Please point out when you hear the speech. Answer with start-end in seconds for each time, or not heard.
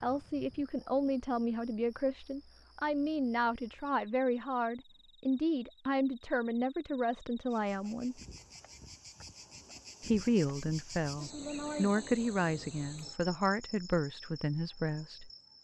0.0-8.2, 10.0-15.3.